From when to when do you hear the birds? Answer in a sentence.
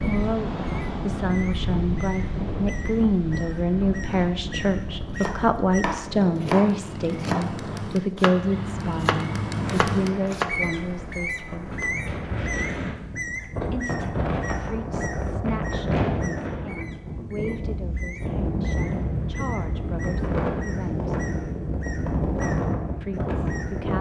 The birds can be heard from 0.0 to 23.9 s.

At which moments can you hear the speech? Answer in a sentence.
You can hear the speech from 0.0 to 11.8 s, from 13.7 to 21.1 s and from 23.0 to 23.9 s.